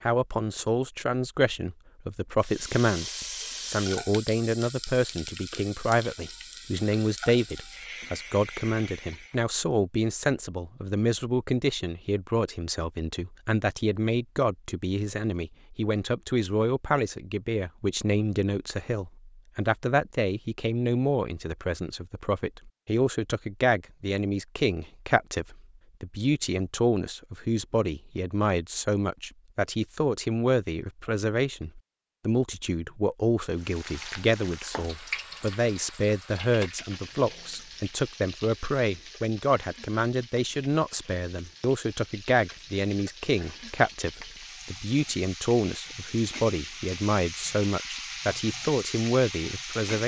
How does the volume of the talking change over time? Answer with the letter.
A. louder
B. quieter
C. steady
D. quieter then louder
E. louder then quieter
C.